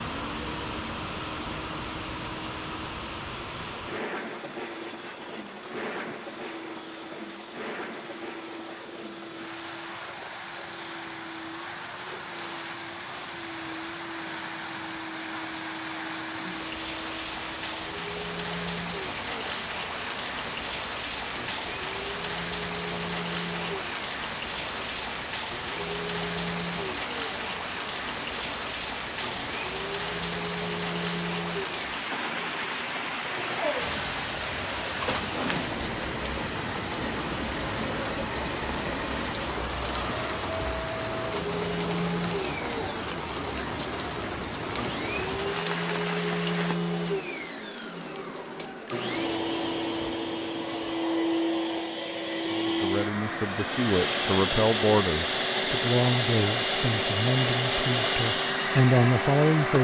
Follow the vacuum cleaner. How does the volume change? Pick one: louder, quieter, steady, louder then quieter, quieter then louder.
louder.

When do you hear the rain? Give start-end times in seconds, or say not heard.
0.0-46.8.